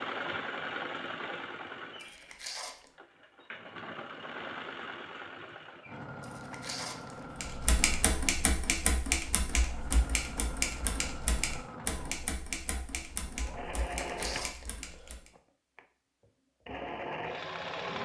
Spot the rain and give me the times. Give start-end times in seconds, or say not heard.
not heard.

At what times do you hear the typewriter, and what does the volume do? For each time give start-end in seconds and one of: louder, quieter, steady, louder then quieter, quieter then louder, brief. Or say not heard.
7.4-15.3 quieter.